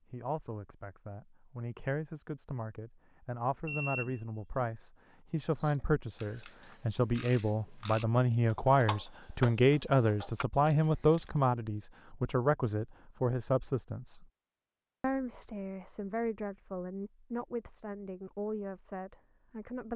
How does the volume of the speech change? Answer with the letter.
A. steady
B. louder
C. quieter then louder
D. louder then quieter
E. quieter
D.